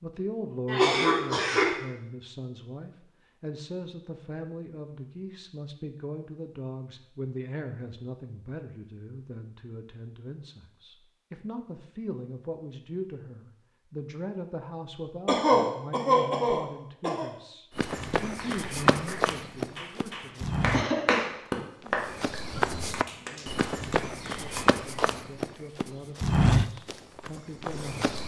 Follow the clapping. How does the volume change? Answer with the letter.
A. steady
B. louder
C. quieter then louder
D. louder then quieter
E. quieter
D.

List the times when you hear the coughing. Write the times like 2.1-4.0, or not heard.
0.7-1.8, 15.2-17.3, 20.7-21.3.